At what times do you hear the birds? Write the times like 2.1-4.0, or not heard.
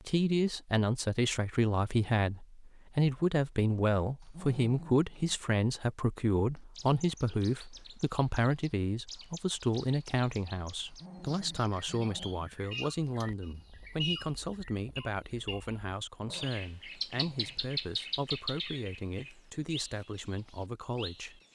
6.5-21.5.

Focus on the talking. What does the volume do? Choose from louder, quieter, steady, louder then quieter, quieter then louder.
quieter.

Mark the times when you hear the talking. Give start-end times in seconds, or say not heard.
0.1-21.4.